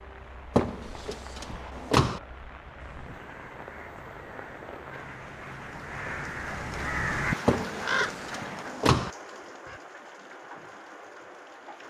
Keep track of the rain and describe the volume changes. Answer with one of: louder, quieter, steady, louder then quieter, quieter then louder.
louder then quieter.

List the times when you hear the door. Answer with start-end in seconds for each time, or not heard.
0.6-2.2, 7.5-9.1.